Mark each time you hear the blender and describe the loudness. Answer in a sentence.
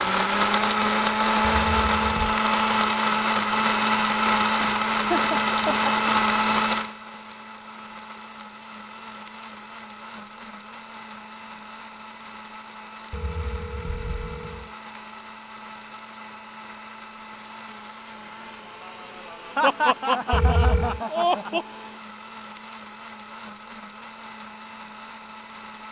The blender can be heard from 0.0 to 25.8 s, getting quieter.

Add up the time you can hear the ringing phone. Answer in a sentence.
You can hear the ringing phone for 3 seconds altogether.